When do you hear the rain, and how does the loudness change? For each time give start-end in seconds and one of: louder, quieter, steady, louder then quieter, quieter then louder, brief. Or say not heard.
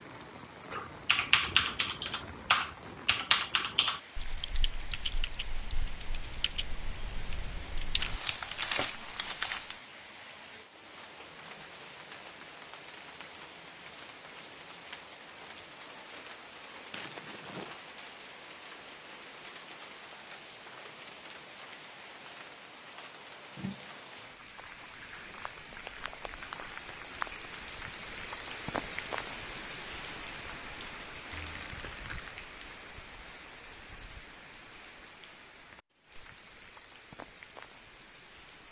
0.0-38.6 louder then quieter.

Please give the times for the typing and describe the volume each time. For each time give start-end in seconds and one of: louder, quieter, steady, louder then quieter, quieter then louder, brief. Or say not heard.
0.7-8.2 quieter.